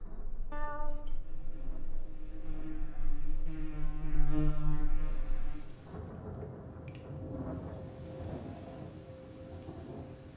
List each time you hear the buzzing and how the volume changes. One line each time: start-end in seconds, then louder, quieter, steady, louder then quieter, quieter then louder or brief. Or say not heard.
0.1-5.7 louder.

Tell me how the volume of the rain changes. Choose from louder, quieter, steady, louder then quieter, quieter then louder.
louder.